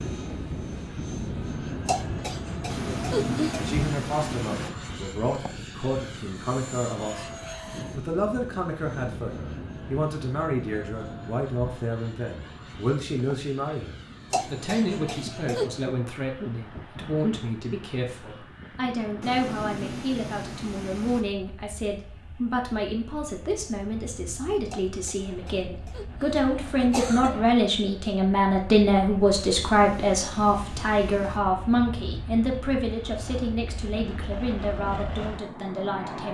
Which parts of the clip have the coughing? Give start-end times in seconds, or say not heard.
1.9-3.8, 14.3-15.7, 24.7-27.4.